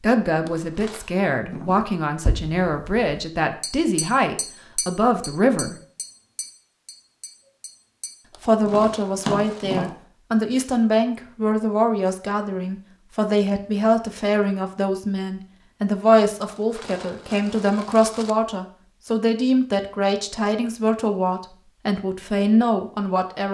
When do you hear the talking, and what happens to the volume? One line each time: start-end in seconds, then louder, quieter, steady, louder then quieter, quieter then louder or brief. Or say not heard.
0.0-5.8 steady
8.4-23.5 steady.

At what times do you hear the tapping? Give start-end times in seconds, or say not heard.
1.5-9.9.